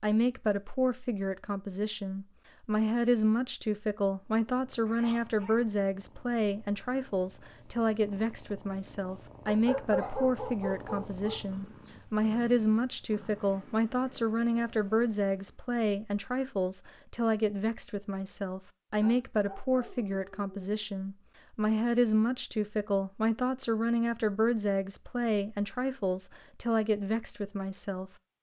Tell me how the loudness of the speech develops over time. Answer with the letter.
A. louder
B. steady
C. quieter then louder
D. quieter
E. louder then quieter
B.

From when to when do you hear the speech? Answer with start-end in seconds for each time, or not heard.
0.0-28.1.